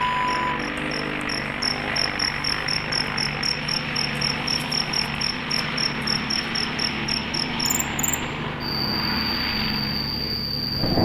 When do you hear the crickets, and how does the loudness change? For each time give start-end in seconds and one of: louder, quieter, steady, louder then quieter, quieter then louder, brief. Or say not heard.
0.0-10.9 steady.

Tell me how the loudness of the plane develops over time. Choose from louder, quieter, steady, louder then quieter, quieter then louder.
steady.